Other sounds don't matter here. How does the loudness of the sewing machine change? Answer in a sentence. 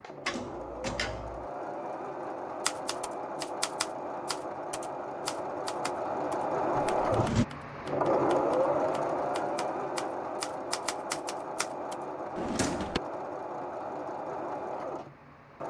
The loudness of the sewing machine goes up, then down.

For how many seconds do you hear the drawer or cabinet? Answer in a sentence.
The drawer or cabinet can be heard for 2 seconds in total.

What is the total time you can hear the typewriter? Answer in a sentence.
You can hear the typewriter for 9 seconds altogether.